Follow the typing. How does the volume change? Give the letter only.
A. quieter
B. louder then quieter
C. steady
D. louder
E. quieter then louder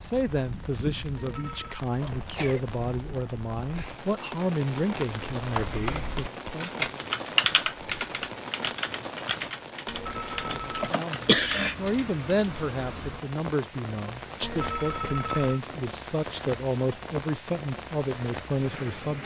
B.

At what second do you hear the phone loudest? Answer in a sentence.
The loudest moment of the phone is at 15 seconds.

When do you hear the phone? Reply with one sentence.
The phone can be heard from 1.1 to 1.9 s, from 9.8 to 10.9 s and from 14.4 to 15.6 s.